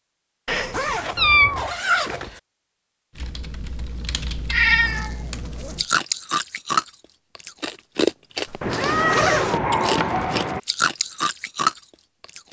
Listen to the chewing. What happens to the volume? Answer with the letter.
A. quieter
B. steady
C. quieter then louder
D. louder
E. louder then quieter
C.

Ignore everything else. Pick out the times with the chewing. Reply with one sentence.
You can hear the chewing from 5.7 to 12.4 s.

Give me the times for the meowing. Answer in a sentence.
You can hear the meowing from 0.5 to 1.7 s, from 4.5 to 5.1 s and from 8.6 to 10.6 s.